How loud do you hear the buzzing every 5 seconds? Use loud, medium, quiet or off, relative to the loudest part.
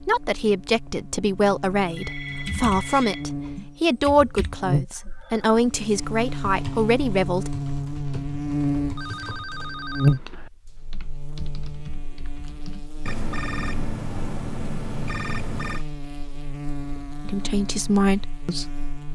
medium, loud, loud, medium.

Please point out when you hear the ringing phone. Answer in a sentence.
The ringing phone can be heard from 1.9 to 3.2 s, from 8.9 to 10.2 s and from 13.1 to 15.8 s.